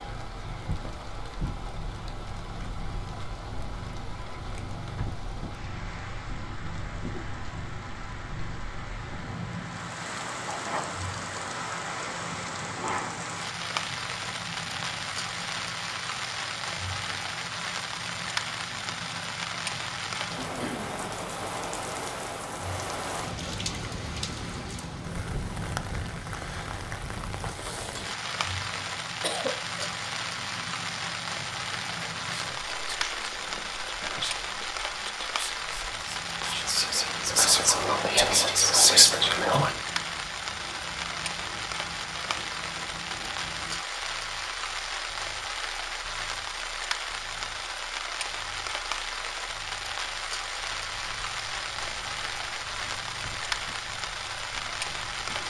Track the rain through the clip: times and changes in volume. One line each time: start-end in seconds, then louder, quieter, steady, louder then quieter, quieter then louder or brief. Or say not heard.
0.0-55.4 louder.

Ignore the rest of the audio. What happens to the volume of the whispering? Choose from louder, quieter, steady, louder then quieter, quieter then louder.
louder.